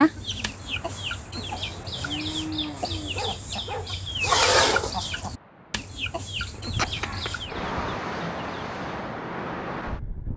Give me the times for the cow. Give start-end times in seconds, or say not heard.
1.4-3.2, 6.3-8.0.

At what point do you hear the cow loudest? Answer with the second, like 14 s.
7 s.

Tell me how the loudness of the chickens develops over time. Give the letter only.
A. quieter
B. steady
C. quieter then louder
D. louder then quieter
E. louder
D.